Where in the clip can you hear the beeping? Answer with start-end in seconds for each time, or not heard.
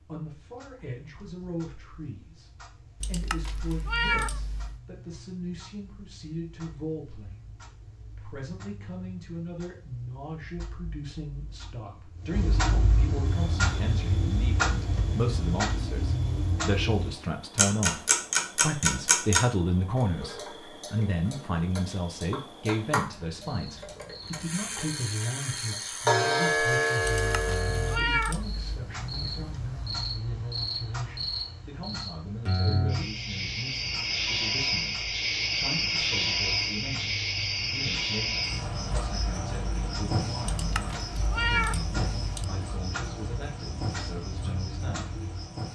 not heard.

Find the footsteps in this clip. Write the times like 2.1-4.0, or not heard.
not heard.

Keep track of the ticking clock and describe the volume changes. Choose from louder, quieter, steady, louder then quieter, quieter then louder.
louder then quieter.